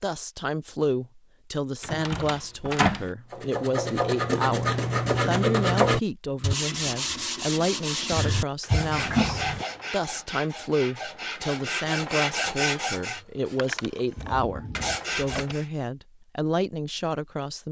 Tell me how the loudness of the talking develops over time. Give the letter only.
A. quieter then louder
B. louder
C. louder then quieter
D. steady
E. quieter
D.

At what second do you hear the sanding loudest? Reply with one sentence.
The volume of the sanding peaks at 6 seconds.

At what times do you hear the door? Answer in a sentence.
The door can be heard from 1.8 to 3.0 s, from 8.7 to 9.7 s and from 14.2 to 15.6 s.